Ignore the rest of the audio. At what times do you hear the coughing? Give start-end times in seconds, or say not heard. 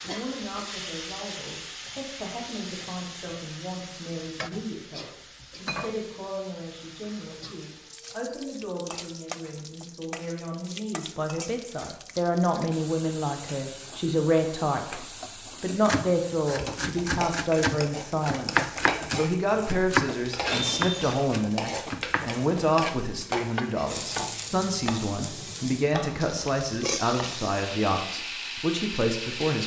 20.5-21.3.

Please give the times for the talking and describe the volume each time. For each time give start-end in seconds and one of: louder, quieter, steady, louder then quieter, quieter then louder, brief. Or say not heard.
0.0-29.6 louder.